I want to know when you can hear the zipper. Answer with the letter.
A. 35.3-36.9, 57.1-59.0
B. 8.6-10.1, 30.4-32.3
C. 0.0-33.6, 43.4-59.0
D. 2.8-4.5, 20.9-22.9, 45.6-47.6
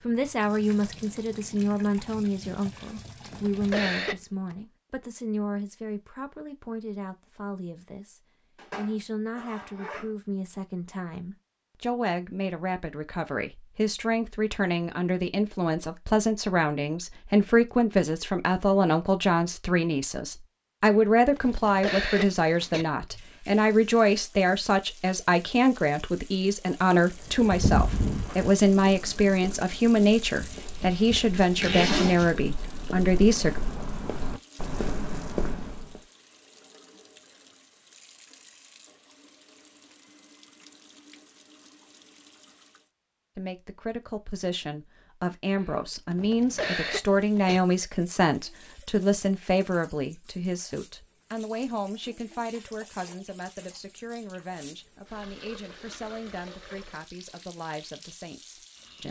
B.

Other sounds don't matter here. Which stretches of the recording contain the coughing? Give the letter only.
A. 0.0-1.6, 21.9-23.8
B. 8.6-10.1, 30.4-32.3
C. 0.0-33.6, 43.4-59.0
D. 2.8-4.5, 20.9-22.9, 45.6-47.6
D.